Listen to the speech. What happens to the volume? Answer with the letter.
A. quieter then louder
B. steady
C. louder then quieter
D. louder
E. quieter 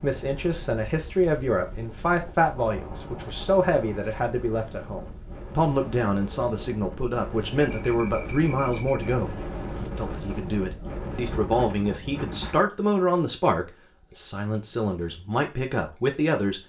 B.